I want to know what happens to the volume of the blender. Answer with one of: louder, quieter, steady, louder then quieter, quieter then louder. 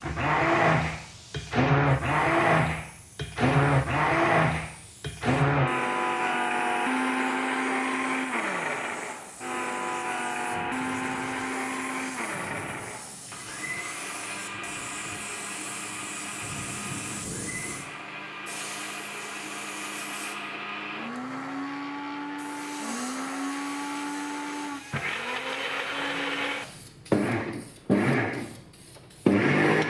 quieter then louder.